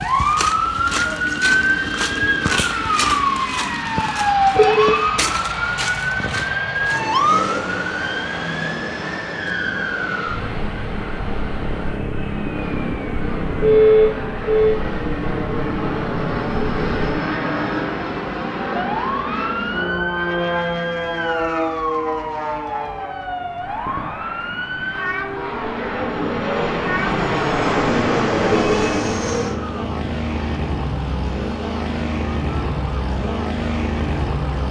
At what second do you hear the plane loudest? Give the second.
28 s.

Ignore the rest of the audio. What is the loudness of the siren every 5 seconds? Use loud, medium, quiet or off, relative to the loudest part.
loud, loud, medium, medium, medium, medium, quiet.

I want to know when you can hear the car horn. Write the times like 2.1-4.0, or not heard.
4.5-5.2, 13.6-14.8, 28.4-29.1.